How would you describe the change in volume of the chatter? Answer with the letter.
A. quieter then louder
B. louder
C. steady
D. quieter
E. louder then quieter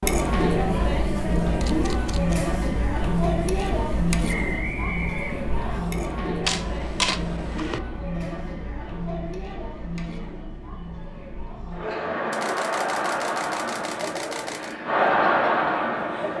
A.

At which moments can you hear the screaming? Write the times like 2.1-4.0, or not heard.
not heard.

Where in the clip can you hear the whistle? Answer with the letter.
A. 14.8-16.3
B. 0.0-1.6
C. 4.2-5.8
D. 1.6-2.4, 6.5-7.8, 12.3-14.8
C.